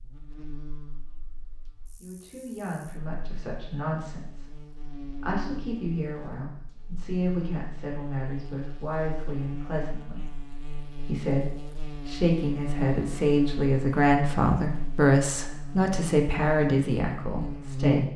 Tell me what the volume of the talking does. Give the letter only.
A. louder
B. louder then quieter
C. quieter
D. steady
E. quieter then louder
A.